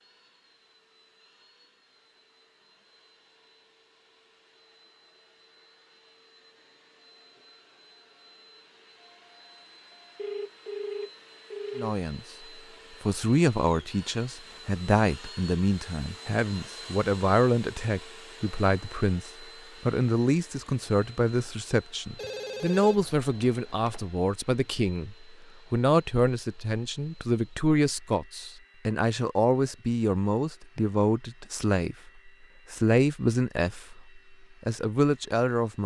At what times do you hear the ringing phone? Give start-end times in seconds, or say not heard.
10.2-11.9, 22.1-24.1.